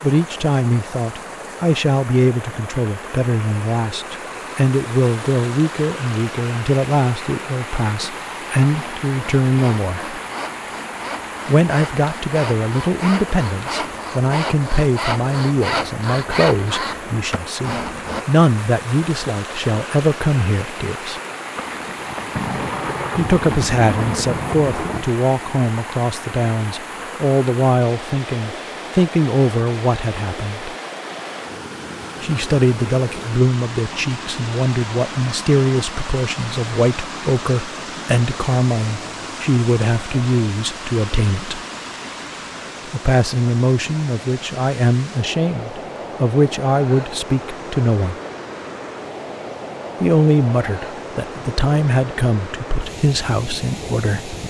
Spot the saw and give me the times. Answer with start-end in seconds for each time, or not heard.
8.7-18.2.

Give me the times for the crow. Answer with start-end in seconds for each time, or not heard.
not heard.